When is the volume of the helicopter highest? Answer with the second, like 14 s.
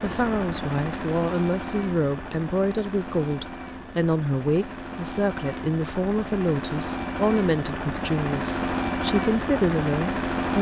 9 s.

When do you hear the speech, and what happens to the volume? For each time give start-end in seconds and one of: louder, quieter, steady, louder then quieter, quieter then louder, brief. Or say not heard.
0.0-10.5 steady.